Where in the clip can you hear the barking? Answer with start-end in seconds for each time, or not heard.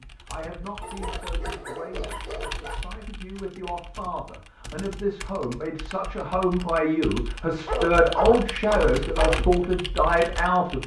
0.8-2.8, 7.7-9.3.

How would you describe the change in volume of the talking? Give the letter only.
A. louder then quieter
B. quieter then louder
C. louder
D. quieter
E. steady
C.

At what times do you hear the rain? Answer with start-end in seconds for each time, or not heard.
not heard.